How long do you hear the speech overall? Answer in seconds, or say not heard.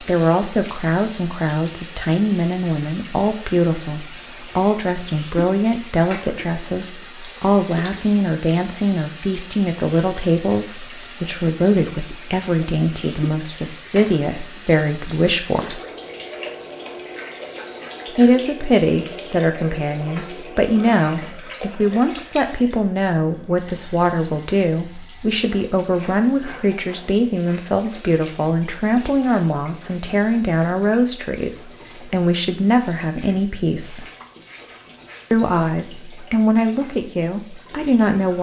35 s.